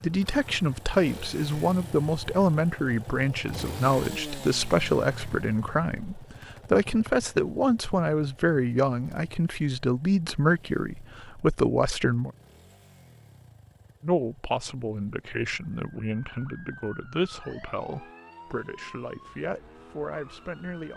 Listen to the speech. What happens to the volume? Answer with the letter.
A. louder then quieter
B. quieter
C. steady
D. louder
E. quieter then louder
B.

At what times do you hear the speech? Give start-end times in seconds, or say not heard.
0.0-12.3, 14.0-20.9.